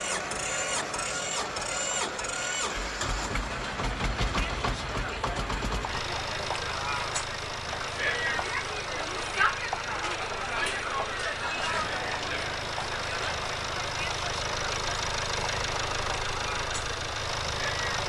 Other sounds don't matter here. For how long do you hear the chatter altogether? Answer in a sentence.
The chatter can be heard for 18 seconds in total.